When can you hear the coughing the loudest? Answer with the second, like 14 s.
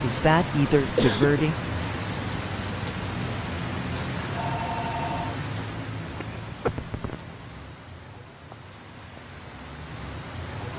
1 s.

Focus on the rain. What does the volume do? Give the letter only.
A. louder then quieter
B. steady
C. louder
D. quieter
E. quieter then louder
D.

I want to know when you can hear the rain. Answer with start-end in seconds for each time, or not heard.
0.0-10.7.